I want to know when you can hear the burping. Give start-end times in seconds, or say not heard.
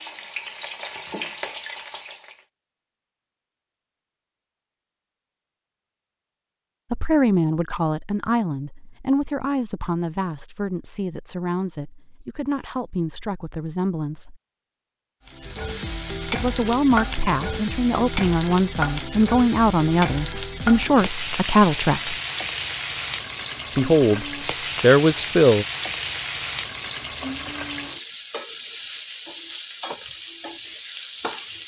not heard.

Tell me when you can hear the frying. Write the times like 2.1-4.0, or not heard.
0.0-2.5, 15.2-31.6.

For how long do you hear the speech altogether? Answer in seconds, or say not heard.
15 s.